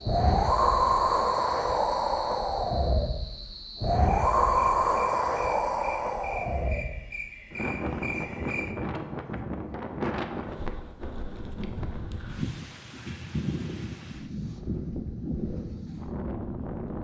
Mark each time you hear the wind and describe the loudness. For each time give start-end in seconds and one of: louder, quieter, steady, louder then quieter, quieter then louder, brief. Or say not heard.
0.0-16.9 quieter.